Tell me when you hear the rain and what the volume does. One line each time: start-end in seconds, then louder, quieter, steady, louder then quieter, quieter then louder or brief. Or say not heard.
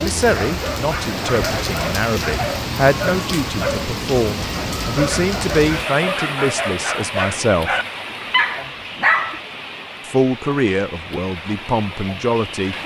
0.0-12.8 quieter.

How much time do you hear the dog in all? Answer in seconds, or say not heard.
9 s.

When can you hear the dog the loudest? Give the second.
9 s.